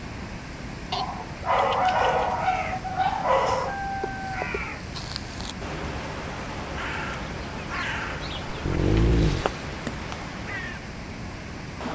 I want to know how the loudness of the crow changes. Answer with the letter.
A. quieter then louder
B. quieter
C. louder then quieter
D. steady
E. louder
D.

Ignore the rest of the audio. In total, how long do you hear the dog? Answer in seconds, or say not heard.
4 s.